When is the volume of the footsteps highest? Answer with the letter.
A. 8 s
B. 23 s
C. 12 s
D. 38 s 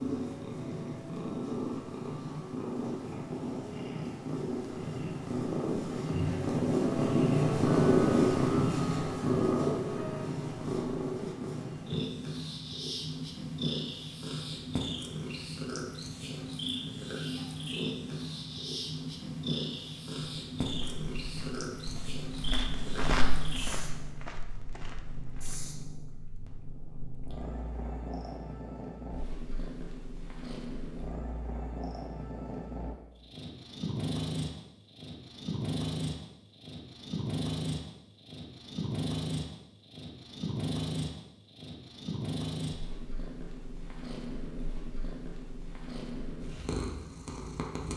B.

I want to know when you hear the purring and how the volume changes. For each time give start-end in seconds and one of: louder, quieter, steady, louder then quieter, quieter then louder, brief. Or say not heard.
0.0-47.9 quieter.